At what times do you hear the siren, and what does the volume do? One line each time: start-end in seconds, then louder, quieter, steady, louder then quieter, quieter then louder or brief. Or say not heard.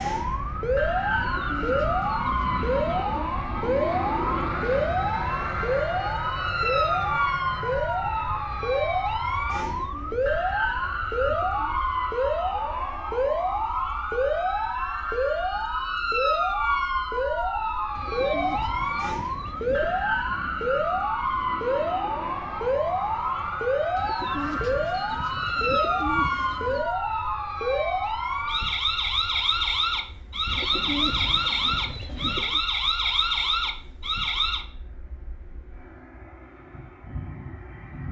0.0-34.6 steady.